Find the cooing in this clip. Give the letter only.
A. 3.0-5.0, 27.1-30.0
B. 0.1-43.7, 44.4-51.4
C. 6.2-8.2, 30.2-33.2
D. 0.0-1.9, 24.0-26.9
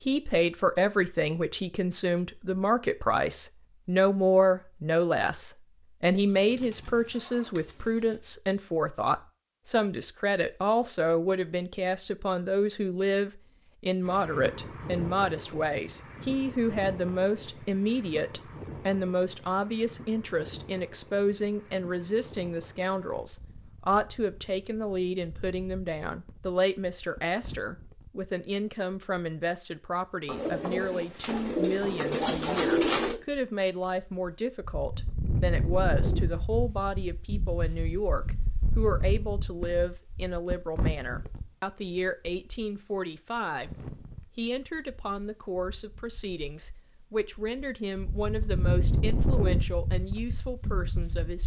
C.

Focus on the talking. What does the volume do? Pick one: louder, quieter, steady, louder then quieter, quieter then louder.
quieter.